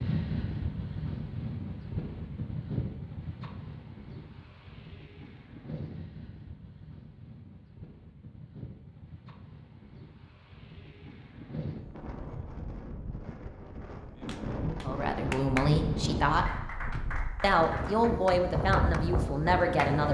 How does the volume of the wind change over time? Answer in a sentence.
The loudness of the wind goes down, then up.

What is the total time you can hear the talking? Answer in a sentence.
You can hear the talking for 4 seconds altogether.